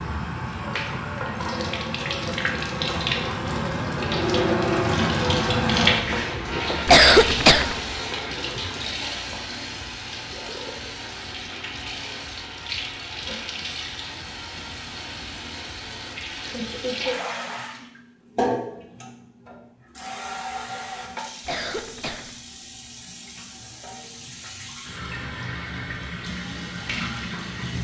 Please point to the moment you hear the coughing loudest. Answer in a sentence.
The loudest moment of the coughing is at 7 seconds.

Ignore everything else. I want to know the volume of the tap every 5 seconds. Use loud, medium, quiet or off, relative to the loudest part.
loud, loud, medium, medium, quiet, medium.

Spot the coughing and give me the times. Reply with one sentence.
You can hear the coughing from 6.8 to 7.8 s and from 21.4 to 22.3 s.